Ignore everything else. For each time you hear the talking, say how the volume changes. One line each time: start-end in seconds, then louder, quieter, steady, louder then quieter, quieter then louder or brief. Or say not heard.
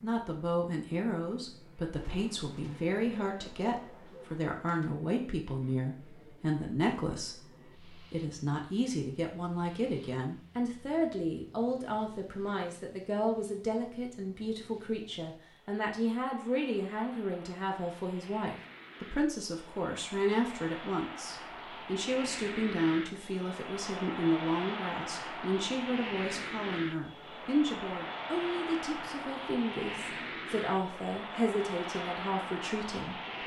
0.0-33.2 steady.